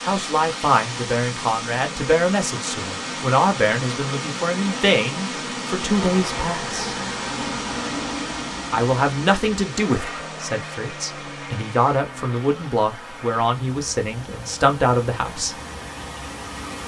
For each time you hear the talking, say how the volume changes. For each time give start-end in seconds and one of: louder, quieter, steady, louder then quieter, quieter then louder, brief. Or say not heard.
0.0-7.0 steady
8.7-15.6 quieter then louder.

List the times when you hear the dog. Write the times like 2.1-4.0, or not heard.
not heard.